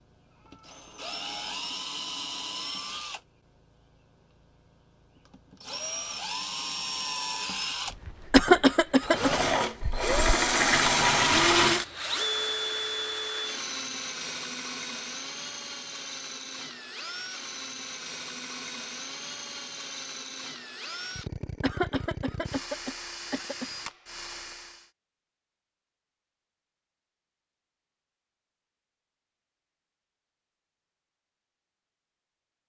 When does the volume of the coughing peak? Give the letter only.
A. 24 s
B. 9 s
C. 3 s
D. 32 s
B.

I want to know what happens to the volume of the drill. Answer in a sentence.
The loudness of the drill goes up, then down.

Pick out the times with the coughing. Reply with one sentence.
You can hear the coughing from 8.3 to 9.3 s and from 21.6 to 23.7 s.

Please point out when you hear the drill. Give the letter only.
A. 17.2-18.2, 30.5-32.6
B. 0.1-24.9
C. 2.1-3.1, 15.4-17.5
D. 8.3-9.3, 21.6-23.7
B.